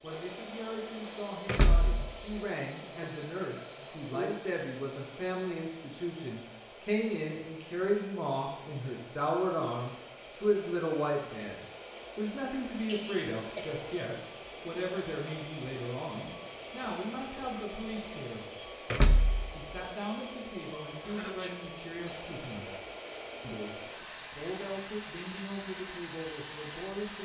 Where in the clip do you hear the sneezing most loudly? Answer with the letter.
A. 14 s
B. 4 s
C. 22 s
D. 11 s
B.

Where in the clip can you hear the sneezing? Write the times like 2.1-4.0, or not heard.
3.0-4.4, 12.8-13.7, 21.0-21.6.